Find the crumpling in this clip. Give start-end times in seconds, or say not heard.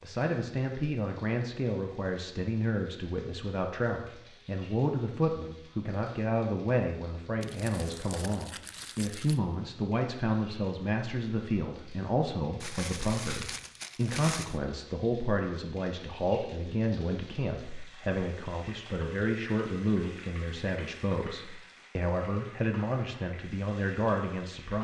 7.4-9.4, 12.6-14.6.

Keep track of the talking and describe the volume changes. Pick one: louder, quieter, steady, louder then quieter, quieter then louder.
steady.